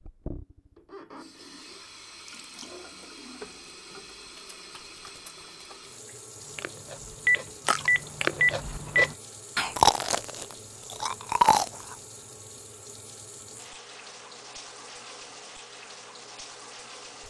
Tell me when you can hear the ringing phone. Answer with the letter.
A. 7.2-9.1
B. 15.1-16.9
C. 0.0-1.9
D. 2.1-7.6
A.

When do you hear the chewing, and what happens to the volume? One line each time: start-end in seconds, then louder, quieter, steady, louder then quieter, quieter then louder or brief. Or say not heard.
6.5-11.9 louder.